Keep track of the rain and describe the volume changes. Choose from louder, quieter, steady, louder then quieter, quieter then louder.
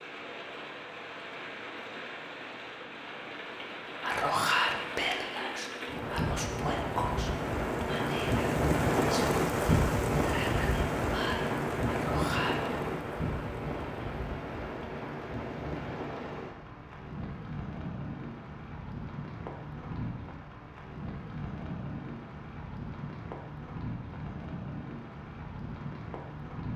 louder then quieter.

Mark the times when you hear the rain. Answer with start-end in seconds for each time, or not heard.
0.0-26.7.